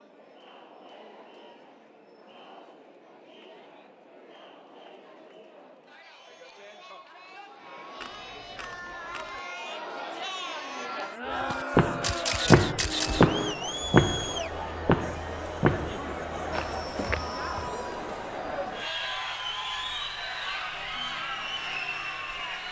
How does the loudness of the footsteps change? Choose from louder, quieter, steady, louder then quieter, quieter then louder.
quieter.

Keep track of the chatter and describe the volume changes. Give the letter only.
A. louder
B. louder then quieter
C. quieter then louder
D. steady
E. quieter
A.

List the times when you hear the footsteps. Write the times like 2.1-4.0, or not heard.
11.3-17.7.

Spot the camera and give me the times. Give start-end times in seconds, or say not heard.
8.0-9.4, 12.0-13.6.